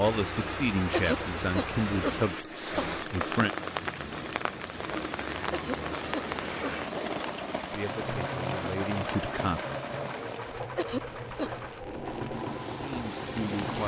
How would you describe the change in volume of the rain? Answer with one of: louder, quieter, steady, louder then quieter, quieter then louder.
quieter.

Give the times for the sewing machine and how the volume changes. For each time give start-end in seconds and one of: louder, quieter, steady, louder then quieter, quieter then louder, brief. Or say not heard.
0.2-13.8 steady.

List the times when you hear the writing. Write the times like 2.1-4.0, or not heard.
not heard.